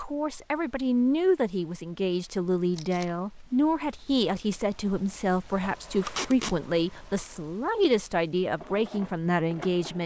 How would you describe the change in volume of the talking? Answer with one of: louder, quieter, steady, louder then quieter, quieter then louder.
steady.